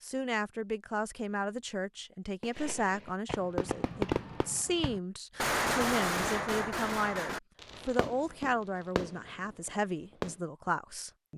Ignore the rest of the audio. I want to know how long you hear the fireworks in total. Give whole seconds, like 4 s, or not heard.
8 s.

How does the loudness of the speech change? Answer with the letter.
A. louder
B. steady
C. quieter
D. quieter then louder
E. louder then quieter
B.